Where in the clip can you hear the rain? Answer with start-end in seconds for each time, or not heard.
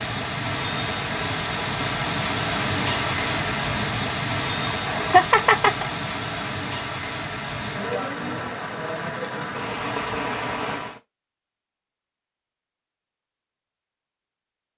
0.0-11.0.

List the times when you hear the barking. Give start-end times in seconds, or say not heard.
not heard.